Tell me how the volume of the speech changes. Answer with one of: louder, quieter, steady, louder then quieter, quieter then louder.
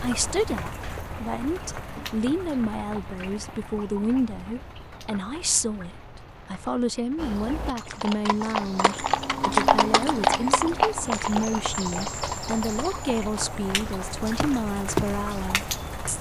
steady.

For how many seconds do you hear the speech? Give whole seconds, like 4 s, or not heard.
16 s.